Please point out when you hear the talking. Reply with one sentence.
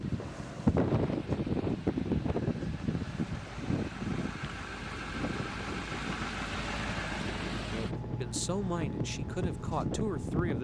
The talking can be heard from 8.2 to 10.5 s.